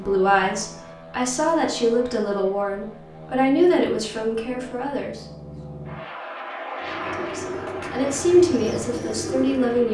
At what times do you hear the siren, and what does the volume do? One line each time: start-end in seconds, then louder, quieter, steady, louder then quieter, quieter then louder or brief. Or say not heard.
not heard.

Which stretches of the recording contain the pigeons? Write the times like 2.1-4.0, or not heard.
6.8-9.9.